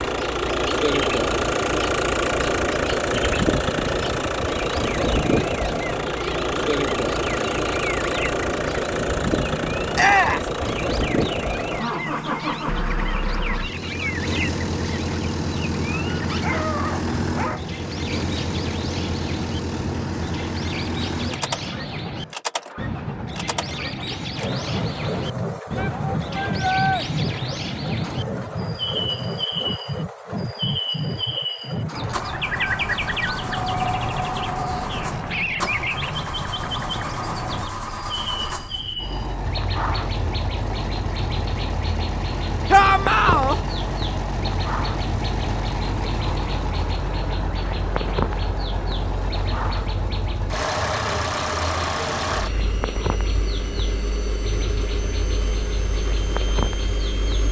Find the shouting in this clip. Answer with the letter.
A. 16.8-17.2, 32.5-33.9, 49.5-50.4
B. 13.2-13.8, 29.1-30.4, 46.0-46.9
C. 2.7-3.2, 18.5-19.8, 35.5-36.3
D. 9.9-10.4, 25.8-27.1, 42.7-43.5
D.